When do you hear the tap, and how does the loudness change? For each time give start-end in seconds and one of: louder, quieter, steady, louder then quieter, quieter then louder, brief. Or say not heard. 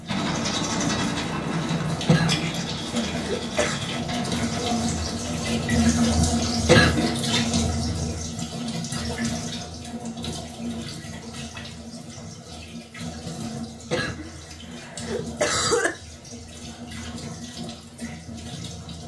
0.0-19.0 louder then quieter.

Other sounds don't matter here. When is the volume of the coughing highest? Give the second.
7 s.